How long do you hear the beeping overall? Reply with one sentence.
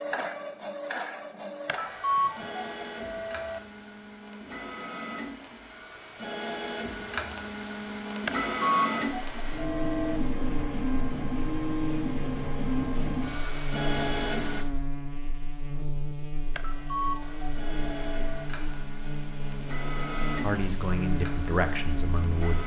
You can hear the beeping for 6 seconds altogether.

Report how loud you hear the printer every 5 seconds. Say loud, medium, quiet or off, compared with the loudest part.
medium, loud, loud, medium, medium.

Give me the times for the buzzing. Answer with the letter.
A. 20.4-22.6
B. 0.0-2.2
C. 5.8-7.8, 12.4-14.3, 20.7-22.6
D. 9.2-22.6
D.